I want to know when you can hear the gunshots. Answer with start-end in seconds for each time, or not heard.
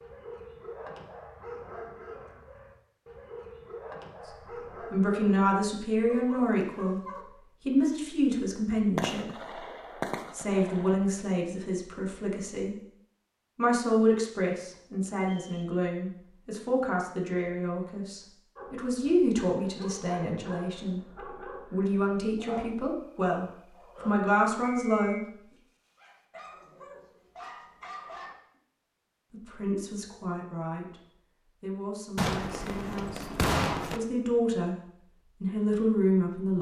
8.9-10.9, 32.1-34.0.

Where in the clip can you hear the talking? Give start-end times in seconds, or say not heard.
4.2-9.6, 10.3-12.8, 13.6-25.2, 29.3-36.5.